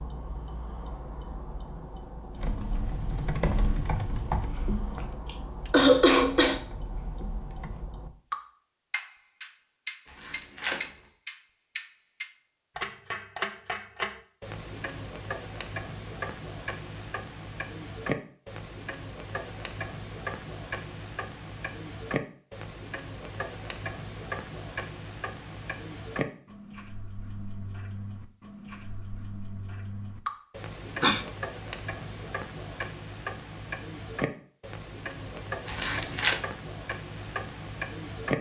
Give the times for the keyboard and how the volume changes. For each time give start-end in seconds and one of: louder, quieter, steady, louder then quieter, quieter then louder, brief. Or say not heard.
2.3-7.8 quieter.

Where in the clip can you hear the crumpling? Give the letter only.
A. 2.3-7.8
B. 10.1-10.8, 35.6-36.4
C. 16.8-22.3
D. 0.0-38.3
B.